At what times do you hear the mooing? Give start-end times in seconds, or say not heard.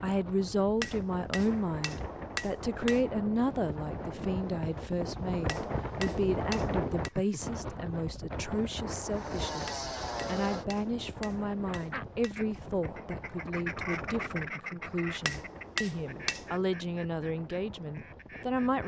not heard.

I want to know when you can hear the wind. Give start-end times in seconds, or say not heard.
0.0-18.8.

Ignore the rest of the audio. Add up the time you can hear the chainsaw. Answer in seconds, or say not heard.
2 s.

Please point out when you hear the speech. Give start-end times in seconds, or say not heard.
0.0-18.8.